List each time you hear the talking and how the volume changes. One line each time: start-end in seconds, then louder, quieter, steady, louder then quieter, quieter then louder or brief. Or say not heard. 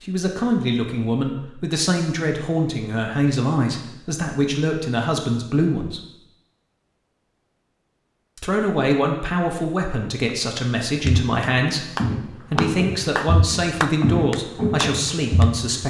0.0-6.0 steady
8.3-15.8 steady.